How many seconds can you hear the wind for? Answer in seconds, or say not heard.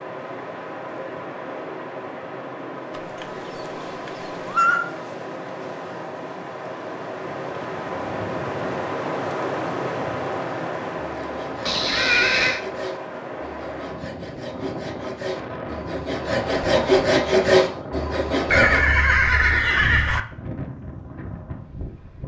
22 s.